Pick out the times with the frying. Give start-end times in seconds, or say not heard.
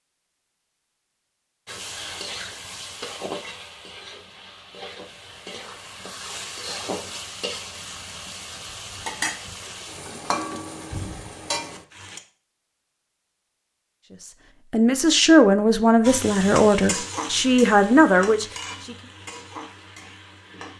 1.6-12.2, 16.1-20.7.